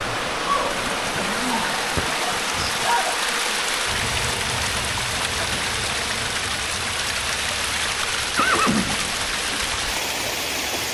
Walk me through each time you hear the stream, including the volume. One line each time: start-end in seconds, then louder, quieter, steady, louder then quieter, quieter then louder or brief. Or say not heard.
0.0-10.8 steady.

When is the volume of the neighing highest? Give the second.
9 s.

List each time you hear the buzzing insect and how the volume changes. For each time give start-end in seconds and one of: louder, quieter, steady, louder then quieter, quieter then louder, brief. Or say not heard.
0.0-10.8 quieter.